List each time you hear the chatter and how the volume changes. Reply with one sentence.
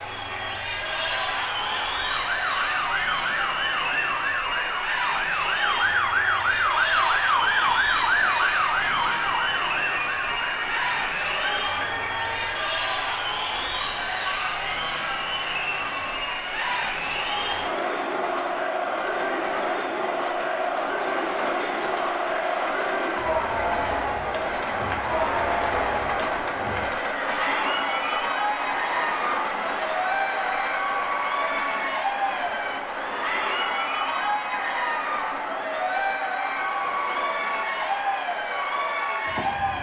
You can hear the chatter from 0.0 to 39.7 s, at a steady volume.